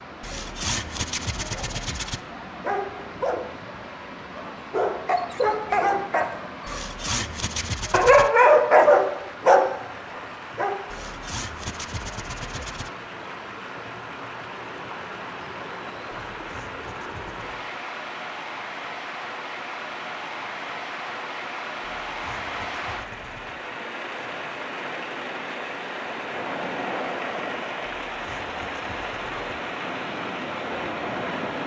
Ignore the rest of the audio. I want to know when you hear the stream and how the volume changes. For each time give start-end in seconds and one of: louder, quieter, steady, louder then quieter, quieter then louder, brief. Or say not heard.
0.0-31.6 louder.